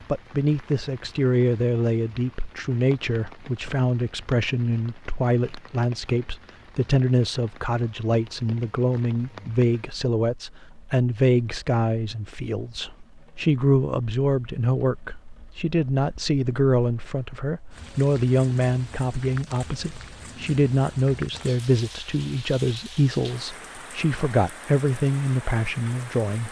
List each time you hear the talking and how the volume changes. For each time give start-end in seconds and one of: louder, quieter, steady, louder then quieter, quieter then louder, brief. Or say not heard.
0.1-26.4 steady.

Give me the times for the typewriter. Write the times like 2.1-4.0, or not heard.
not heard.